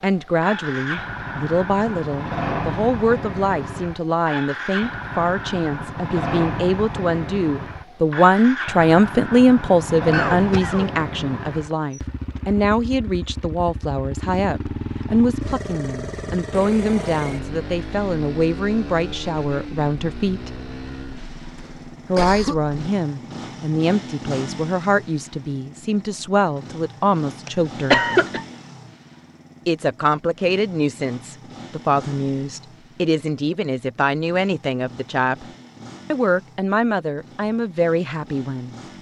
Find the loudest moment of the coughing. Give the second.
28 s.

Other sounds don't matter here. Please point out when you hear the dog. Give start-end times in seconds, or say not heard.
not heard.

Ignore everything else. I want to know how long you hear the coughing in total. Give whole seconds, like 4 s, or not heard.
3 s.